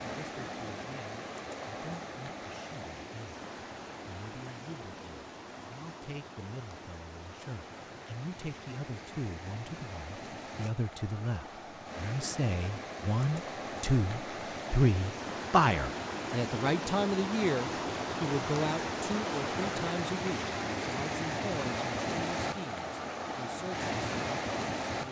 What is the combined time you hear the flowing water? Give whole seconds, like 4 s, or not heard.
25 s.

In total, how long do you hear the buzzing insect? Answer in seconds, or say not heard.
not heard.